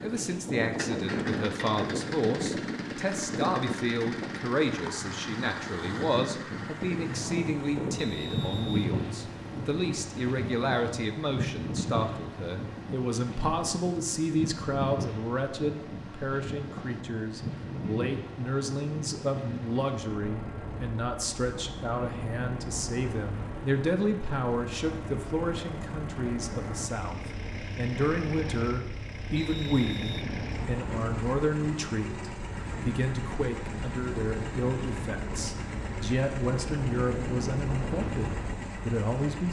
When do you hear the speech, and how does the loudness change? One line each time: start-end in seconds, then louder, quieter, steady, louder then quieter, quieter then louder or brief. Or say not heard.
0.0-39.4 steady.